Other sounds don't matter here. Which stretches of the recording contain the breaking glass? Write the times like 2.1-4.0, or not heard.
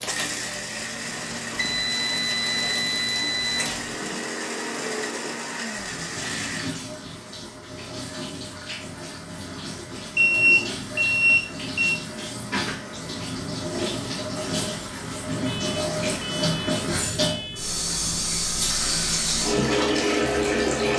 not heard.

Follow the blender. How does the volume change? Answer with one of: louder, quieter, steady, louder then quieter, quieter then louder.
steady.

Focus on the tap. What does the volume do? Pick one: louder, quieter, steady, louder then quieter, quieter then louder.
louder.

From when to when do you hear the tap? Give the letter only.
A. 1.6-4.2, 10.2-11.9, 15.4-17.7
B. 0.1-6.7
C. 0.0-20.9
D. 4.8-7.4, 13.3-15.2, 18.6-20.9
C.